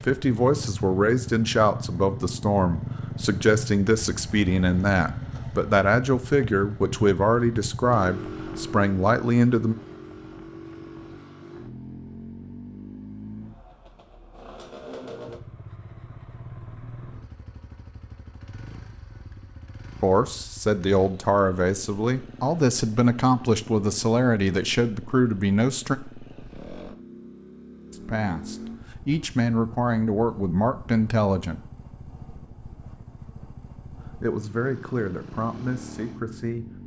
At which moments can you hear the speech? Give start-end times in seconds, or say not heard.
0.0-9.8, 20.0-25.9, 27.9-31.6, 34.0-36.8.